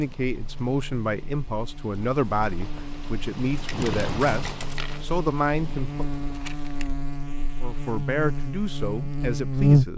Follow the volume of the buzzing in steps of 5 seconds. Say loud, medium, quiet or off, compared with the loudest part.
quiet, loud.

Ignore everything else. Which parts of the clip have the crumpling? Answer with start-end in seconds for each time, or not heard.
6.3-6.9.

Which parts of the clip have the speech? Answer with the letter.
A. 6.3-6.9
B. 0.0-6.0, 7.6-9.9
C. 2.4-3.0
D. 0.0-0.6
B.